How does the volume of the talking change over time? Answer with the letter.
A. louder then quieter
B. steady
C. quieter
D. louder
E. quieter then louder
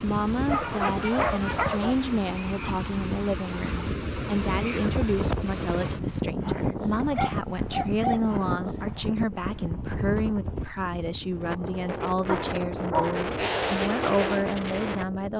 B.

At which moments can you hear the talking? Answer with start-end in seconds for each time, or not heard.
0.0-15.3.